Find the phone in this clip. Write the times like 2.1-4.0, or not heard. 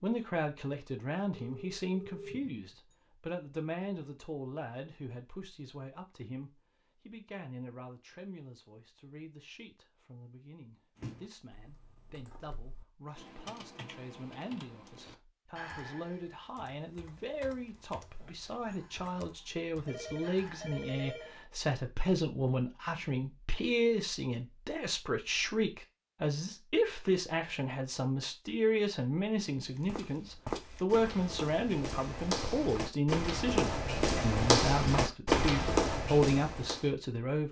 1.3-3.0, 19.8-21.4.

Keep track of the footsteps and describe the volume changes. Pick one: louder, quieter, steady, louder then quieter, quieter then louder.
louder.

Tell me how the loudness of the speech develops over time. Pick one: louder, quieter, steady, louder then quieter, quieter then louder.
quieter then louder.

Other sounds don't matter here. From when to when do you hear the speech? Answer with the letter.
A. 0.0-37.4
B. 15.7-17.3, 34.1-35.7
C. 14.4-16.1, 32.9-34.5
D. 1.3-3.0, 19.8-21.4
A.